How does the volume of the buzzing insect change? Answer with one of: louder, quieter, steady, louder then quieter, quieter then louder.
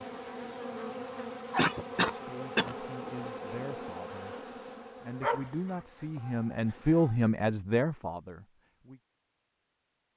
quieter.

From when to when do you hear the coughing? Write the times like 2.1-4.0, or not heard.
1.6-2.8.